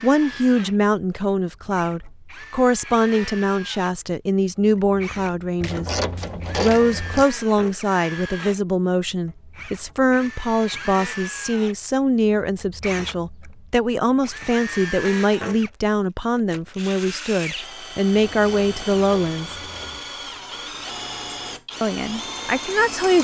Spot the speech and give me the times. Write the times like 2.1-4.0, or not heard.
0.0-5.9, 6.6-19.6, 21.8-23.2.